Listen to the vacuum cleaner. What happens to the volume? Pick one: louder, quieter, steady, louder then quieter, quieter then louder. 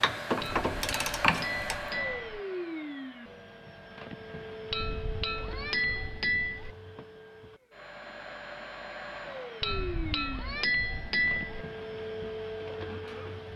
quieter then louder.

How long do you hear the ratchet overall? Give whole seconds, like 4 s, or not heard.
2 s.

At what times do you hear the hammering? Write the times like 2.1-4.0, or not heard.
0.4-2.4, 4.7-6.8, 9.6-11.7.